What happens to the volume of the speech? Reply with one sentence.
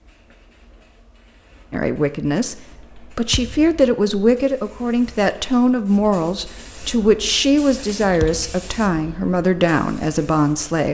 The volume of the speech stays about the same.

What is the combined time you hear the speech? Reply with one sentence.
The speech can be heard for 9 seconds in total.